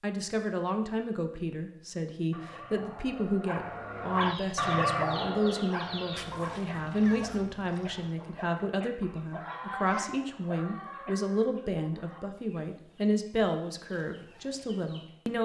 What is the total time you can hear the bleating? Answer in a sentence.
The bleating can't be heard in this clip.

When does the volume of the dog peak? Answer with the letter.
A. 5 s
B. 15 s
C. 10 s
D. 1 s
A.